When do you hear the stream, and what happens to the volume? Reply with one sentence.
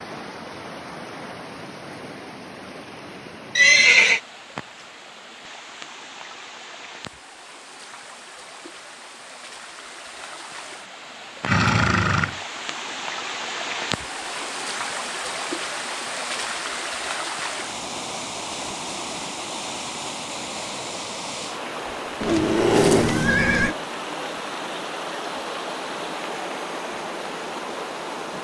You can hear the stream from 0.0 to 28.3 s, getting louder.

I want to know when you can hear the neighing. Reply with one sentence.
You can hear the neighing from 3.5 to 4.2 s, from 11.4 to 12.3 s and from 22.2 to 23.8 s.